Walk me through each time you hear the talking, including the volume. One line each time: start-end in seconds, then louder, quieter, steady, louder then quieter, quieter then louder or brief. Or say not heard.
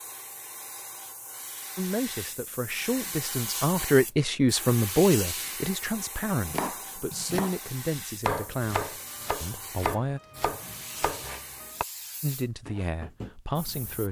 1.8-10.2 louder then quieter
12.2-14.0 brief.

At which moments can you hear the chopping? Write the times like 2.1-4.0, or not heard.
6.3-11.8.